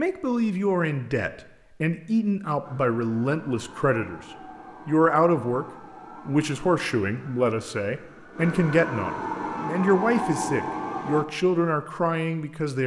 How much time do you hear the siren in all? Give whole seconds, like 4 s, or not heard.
9 s.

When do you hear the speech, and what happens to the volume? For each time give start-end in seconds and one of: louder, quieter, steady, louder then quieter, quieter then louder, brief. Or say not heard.
0.0-4.2 steady
4.8-5.7 brief
6.2-12.8 steady.